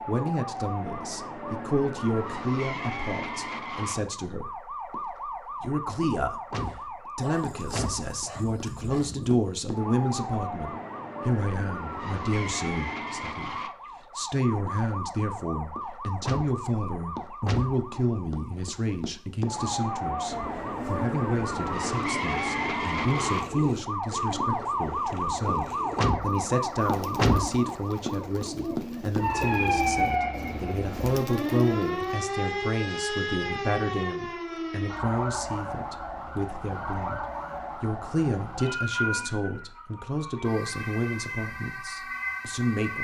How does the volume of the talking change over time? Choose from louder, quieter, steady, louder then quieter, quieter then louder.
steady.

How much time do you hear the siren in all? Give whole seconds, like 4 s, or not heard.
43 s.